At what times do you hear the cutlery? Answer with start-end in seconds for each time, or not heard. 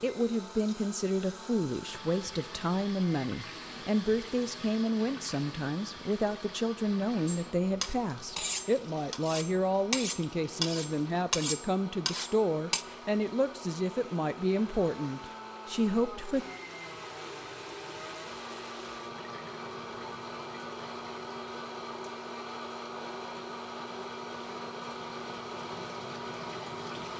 7.2-12.8.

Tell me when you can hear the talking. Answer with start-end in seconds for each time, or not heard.
0.0-16.4.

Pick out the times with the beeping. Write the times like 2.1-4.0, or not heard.
not heard.